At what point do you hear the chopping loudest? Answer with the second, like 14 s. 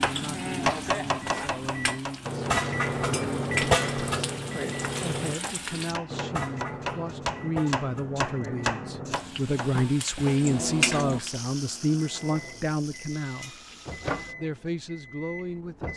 1 s.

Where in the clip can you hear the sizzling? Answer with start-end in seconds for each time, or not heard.
0.0-6.0, 9.1-14.3.